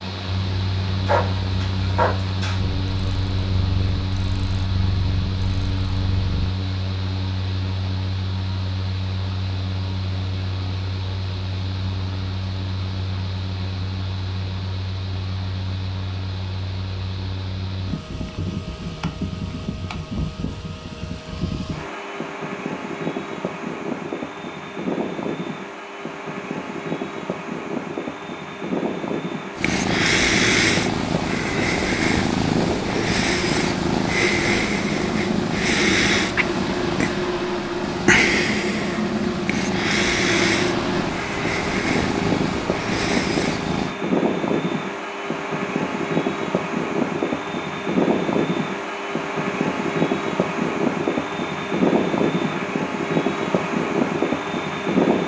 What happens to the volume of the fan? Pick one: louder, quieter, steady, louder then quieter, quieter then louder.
louder.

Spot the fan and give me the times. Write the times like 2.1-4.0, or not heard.
0.0-55.2.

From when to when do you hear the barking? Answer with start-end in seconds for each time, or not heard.
1.1-2.6.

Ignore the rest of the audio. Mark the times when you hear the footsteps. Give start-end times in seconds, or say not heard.
not heard.